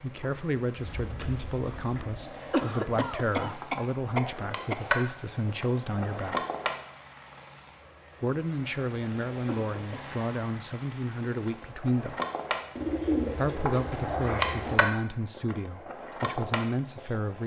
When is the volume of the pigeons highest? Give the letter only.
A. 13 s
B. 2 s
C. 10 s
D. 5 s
A.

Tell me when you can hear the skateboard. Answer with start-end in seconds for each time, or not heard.
0.1-6.9, 11.3-17.4.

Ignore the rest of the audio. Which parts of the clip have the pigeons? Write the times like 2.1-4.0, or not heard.
0.8-2.2, 12.8-14.8.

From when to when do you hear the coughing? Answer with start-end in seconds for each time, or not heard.
2.5-4.8, 9.4-10.1.